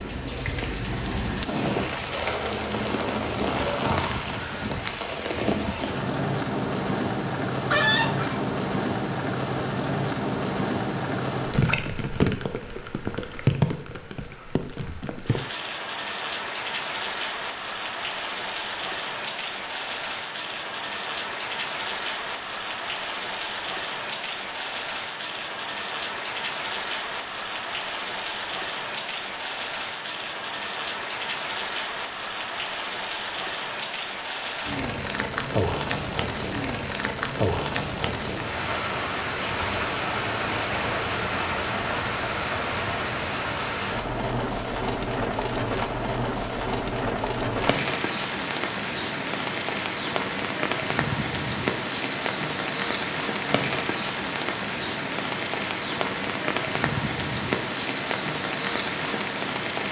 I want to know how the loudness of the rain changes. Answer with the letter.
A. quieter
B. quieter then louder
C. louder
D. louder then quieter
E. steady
E.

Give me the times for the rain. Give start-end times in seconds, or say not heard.
0.0-59.8.